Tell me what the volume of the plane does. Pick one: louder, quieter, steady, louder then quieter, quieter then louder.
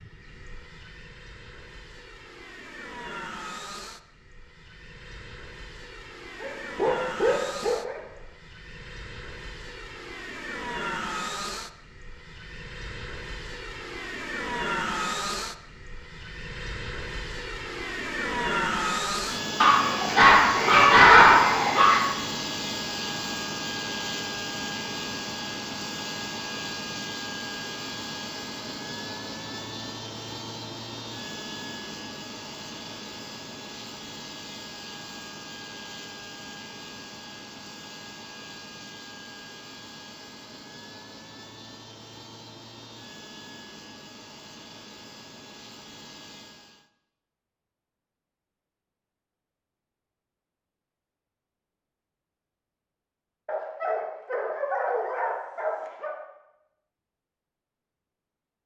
louder then quieter.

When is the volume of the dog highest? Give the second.
21 s.